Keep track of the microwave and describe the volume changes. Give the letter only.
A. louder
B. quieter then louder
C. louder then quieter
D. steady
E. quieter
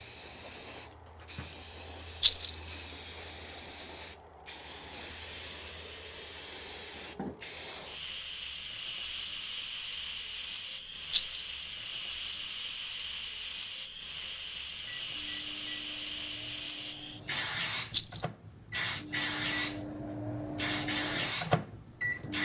A.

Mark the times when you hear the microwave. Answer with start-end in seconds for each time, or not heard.
14.6-22.4.